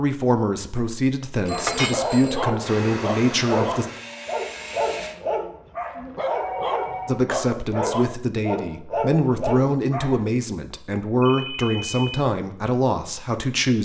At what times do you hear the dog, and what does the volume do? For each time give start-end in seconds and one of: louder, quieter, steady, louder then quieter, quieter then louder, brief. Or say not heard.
1.4-10.2 steady.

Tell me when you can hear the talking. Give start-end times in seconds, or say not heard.
0.0-3.9, 7.0-13.7.